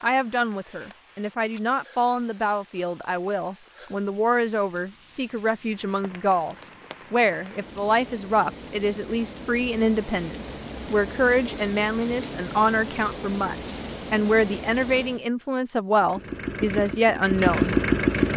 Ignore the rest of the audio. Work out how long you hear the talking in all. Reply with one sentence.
The talking can be heard for 18 seconds in total.